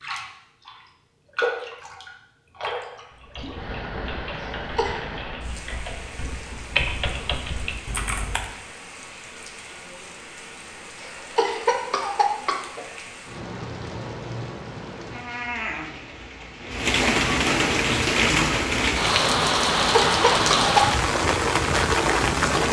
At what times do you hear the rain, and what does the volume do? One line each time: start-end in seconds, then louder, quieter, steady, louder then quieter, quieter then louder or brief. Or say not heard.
0.0-22.6 quieter then louder.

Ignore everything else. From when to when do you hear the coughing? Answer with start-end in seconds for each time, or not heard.
4.3-5.0, 10.9-12.8, 19.8-20.9.